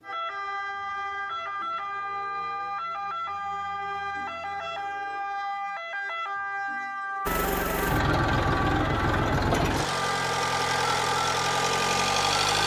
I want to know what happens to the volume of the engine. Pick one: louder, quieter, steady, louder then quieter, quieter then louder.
steady.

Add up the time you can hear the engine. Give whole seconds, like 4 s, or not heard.
5 s.